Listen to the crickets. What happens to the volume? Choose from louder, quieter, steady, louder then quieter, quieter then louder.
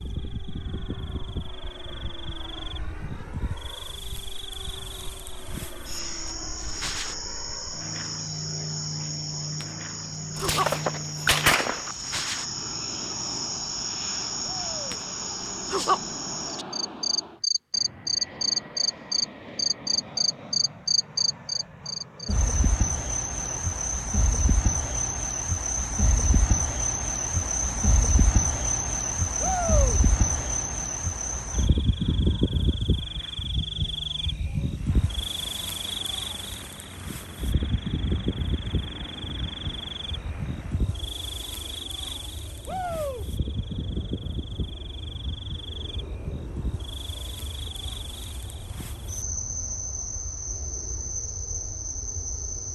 louder then quieter.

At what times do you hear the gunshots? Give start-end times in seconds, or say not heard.
10.3-11.9.